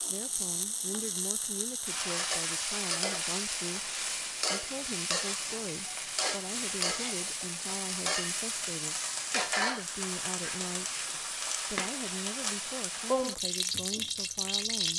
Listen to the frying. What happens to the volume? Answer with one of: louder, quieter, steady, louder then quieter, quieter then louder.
steady.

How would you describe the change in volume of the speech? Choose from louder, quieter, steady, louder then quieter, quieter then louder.
steady.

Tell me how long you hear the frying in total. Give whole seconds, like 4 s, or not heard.
15 s.